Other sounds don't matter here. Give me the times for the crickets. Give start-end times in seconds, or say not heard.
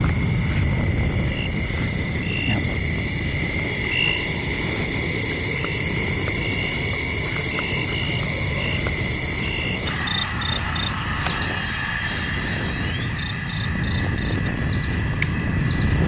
0.0-16.0.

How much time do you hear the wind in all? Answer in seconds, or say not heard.
16 s.